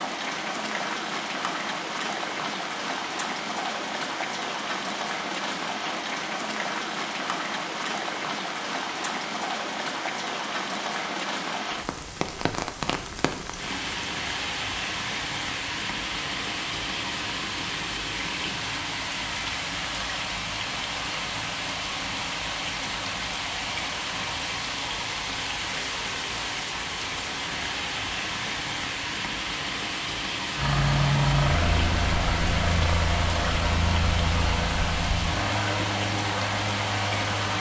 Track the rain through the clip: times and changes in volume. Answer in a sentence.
The rain can be heard from 0.0 to 37.5 s, at a steady volume.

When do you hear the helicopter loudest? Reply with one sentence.
The loudest moment of the helicopter is at 31 seconds.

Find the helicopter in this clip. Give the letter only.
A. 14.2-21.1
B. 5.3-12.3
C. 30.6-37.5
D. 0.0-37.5
C.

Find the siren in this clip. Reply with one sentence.
The siren can't be heard in this clip.